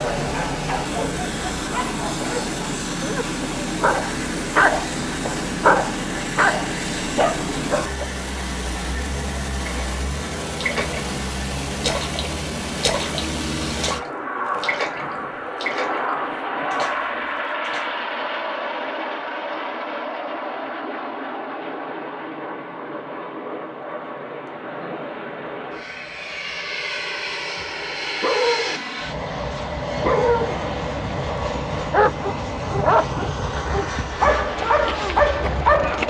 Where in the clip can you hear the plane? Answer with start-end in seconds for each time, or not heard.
0.0-36.0.